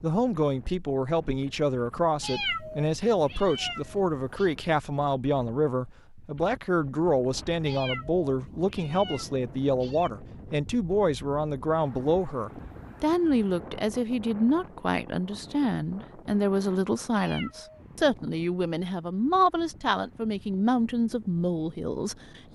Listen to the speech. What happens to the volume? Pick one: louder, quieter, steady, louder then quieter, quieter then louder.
steady.